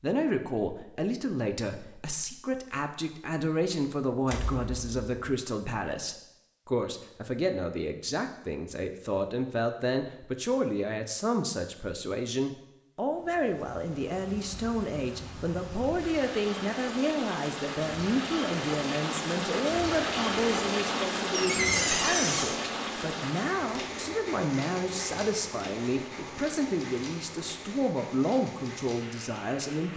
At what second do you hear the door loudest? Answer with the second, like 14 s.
22 s.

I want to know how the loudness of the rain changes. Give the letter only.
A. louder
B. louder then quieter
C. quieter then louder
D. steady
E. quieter
B.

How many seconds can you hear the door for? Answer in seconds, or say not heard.
2 s.